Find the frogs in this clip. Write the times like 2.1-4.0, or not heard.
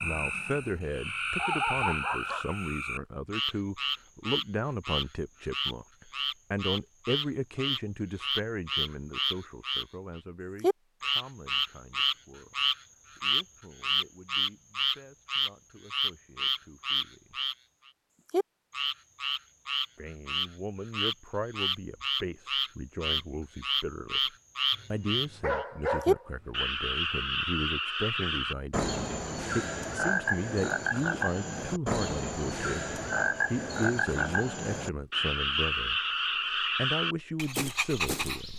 0.0-38.5.